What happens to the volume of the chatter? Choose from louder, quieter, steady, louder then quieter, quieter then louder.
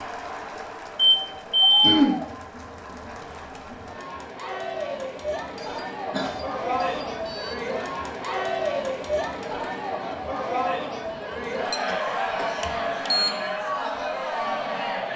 louder.